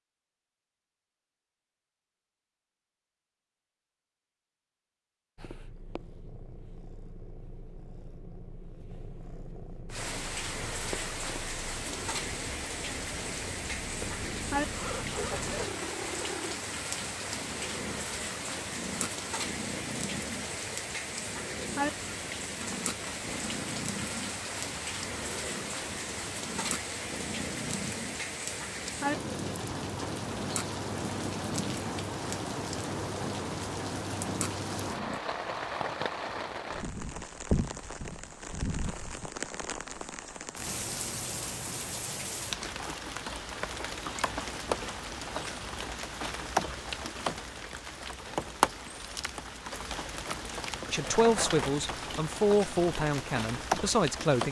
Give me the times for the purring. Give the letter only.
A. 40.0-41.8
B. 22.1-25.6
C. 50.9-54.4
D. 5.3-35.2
D.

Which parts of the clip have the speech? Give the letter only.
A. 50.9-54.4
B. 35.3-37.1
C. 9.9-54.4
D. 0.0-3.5
A.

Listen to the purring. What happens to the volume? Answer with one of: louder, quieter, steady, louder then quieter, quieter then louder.
louder.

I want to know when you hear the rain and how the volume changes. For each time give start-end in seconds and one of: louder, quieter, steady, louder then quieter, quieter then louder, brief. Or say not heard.
9.9-54.4 steady.